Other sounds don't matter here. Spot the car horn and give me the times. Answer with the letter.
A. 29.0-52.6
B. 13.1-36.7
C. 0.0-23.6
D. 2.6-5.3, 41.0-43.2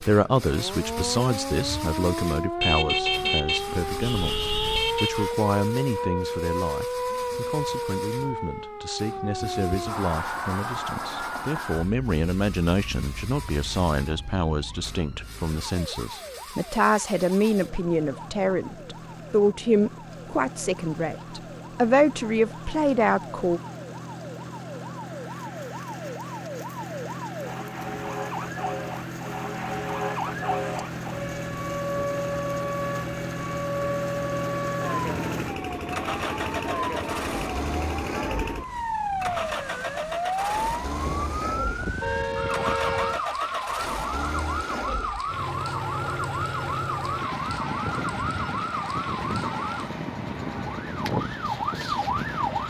D.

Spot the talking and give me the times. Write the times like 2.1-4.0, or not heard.
0.0-23.6.